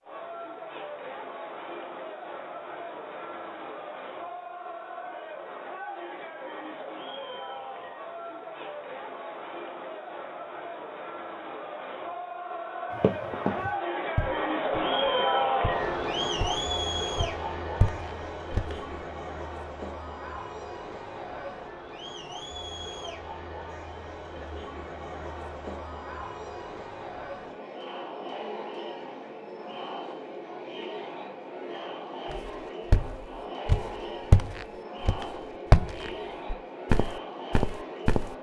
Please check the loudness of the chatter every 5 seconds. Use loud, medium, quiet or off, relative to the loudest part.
medium, medium, loud, loud, medium, medium, medium, medium.